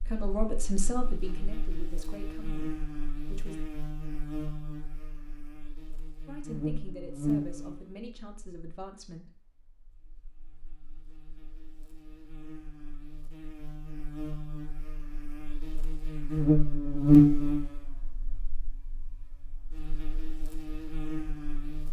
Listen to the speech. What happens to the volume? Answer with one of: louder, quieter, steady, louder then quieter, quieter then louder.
quieter.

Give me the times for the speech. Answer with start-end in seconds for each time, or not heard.
0.1-3.5, 6.2-9.3.